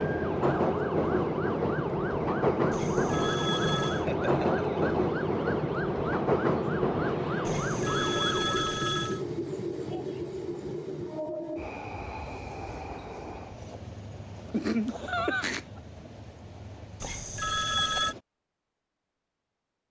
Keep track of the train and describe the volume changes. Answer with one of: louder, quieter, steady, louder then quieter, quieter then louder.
quieter.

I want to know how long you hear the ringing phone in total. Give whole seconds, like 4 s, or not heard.
4 s.